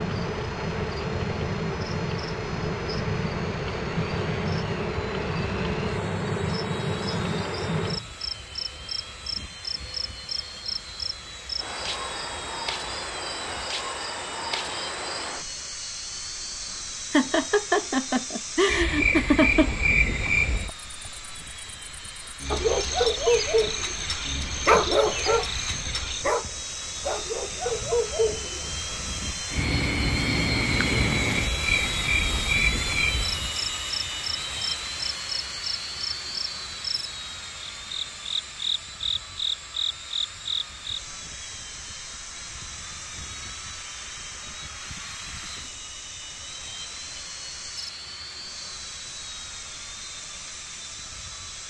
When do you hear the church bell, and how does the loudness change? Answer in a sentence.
You can't hear the church bell here.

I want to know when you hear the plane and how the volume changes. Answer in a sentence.
You can hear the plane from 0.0 to 51.6 s, getting louder then quieter.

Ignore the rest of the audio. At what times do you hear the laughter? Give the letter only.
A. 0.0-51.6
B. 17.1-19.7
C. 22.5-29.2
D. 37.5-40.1
B.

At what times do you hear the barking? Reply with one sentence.
You can hear the barking from 22.5 to 29.2 s.